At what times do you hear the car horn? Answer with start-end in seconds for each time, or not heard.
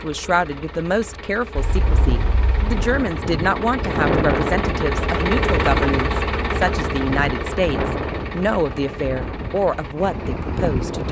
1.6-2.9.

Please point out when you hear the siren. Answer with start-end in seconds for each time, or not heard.
not heard.